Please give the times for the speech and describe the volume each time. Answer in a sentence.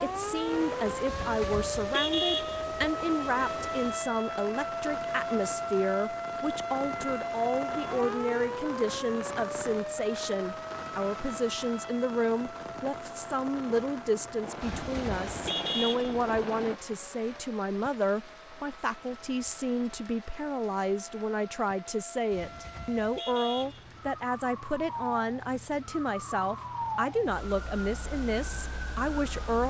The speech can be heard from 0.0 to 29.6 s, at a steady volume.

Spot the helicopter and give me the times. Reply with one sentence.
You can hear the helicopter from 14.4 to 16.8 s.